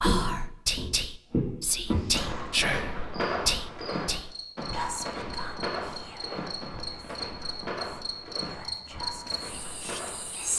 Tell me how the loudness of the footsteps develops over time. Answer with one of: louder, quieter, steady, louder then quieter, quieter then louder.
quieter.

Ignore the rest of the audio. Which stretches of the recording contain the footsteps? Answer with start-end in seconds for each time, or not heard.
0.0-10.5.